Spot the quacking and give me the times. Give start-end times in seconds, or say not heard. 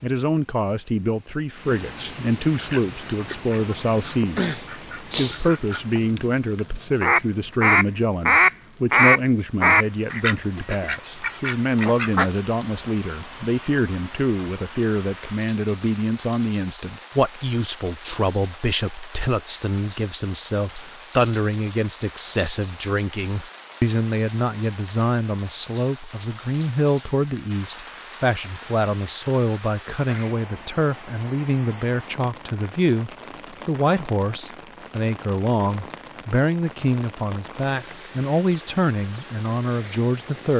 2.5-12.3.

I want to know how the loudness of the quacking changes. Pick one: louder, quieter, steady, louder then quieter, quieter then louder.
louder then quieter.